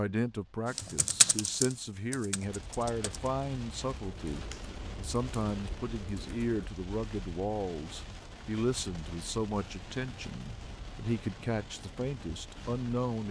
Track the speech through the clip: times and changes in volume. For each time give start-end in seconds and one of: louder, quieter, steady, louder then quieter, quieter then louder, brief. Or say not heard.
0.0-13.2 steady.